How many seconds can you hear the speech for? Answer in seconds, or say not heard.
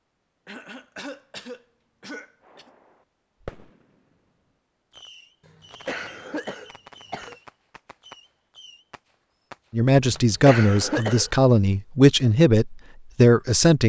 4 s.